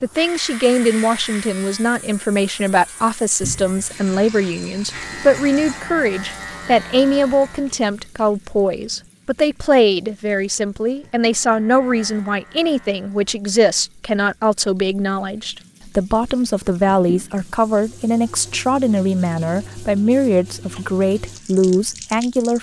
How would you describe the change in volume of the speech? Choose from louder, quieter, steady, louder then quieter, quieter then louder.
steady.